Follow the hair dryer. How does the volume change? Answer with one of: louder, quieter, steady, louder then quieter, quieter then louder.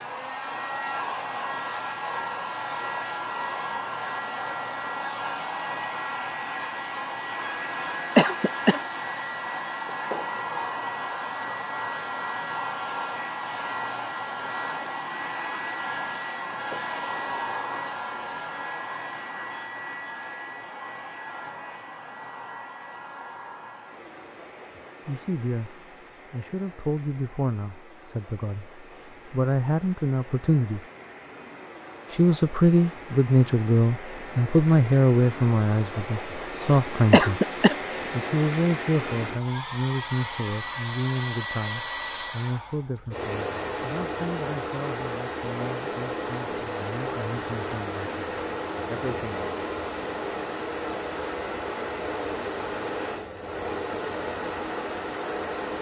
quieter then louder.